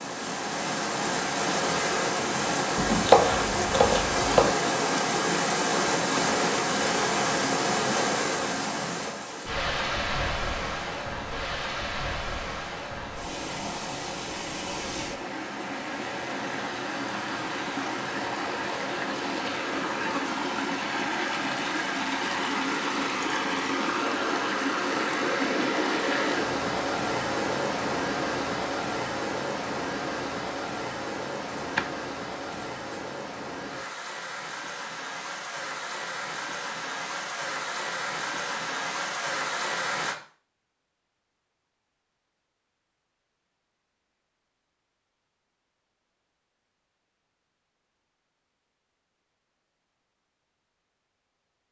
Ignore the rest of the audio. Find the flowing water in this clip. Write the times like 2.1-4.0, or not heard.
0.0-40.1.